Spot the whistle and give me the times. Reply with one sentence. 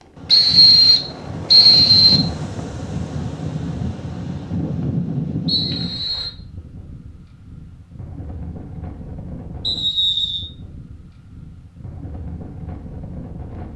The whistle can be heard from 0.2 to 2.3 s, from 5.5 to 6.3 s and from 9.6 to 10.4 s.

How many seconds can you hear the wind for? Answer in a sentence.
You can hear the wind for 14 seconds altogether.